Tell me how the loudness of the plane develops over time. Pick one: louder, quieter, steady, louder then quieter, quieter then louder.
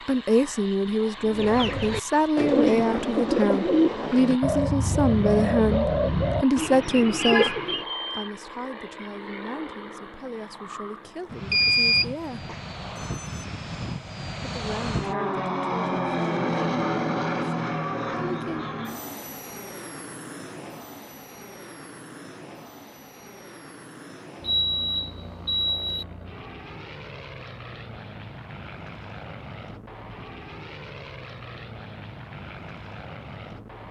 louder then quieter.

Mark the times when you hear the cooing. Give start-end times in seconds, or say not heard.
1.2-7.8.